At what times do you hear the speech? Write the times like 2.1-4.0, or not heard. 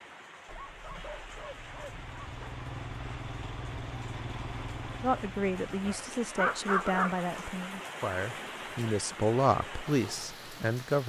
5.0-11.0.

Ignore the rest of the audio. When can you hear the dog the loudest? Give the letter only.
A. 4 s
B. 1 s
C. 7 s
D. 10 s
C.